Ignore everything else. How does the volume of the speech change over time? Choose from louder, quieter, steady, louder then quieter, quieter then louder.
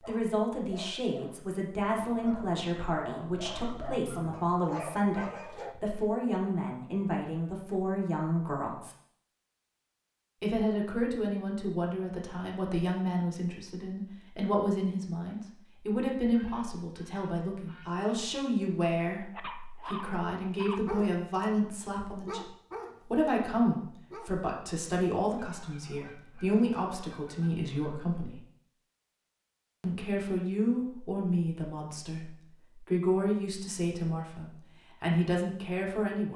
steady.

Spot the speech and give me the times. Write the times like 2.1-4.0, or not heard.
0.1-8.9, 10.4-22.4, 23.0-28.4, 29.8-36.3.